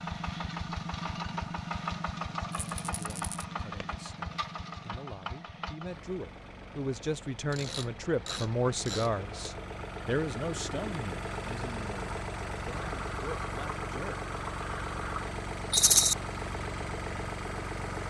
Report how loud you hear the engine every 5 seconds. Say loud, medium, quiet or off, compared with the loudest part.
loud, medium, loud, loud.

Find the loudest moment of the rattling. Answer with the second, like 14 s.
16 s.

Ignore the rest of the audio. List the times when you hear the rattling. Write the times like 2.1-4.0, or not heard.
2.5-3.5, 15.7-16.1.